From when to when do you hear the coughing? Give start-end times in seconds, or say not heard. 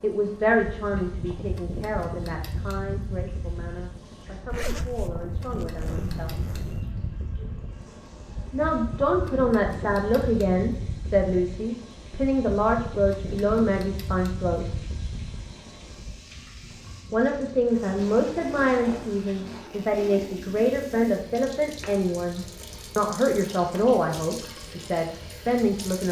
not heard.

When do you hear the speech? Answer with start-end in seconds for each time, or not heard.
0.0-6.3, 8.5-14.8, 17.1-26.0.